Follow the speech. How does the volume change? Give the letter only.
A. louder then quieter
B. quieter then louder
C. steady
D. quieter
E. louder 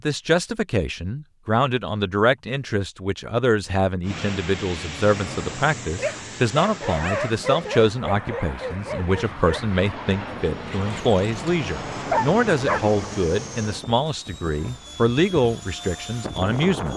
C.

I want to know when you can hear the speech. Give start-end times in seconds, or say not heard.
0.0-16.9.